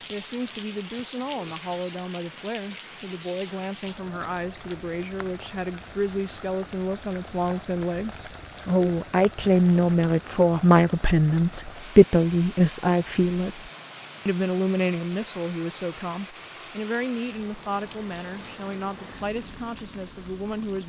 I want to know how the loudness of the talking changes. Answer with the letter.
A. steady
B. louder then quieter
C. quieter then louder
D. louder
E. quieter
B.